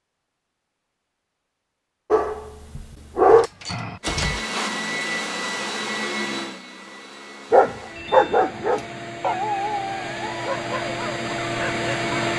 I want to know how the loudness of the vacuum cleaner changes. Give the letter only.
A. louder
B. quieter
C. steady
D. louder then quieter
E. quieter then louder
E.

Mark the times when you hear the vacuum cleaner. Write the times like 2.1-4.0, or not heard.
4.0-12.3.